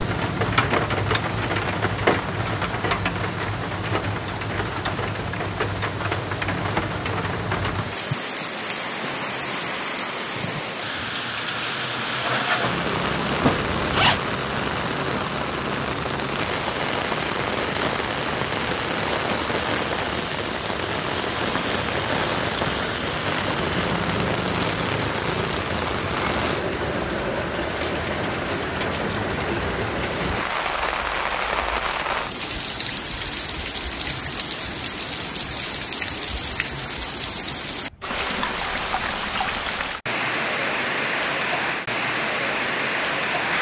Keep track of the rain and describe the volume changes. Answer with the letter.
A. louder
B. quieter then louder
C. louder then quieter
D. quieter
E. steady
E.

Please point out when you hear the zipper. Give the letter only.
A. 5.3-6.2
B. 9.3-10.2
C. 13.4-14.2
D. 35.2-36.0
C.